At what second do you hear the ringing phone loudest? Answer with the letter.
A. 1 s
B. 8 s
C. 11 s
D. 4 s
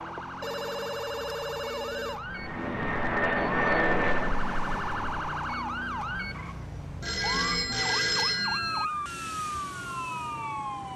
B.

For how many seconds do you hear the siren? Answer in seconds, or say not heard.
11 s.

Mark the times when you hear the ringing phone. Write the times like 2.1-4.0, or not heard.
0.4-2.2, 7.0-8.8.